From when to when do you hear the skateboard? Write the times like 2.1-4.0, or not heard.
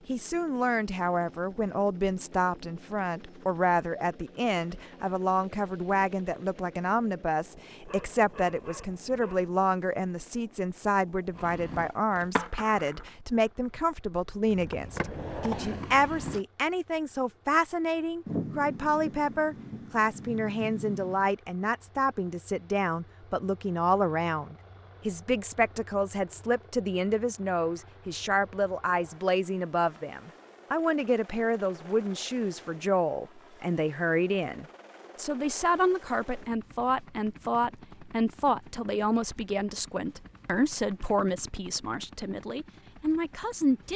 11.3-16.4.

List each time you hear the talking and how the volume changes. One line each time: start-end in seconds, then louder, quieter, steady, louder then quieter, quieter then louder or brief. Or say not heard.
0.1-43.9 steady.